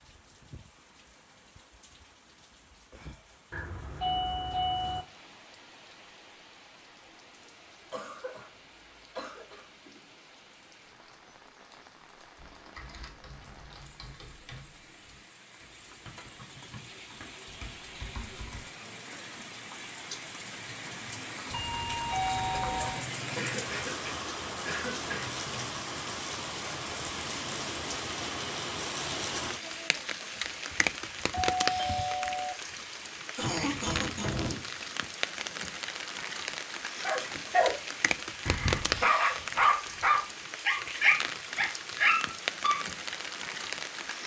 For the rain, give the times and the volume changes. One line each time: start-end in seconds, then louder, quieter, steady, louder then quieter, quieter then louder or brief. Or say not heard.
0.0-44.2 louder.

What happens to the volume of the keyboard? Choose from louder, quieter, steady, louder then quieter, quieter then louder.
quieter then louder.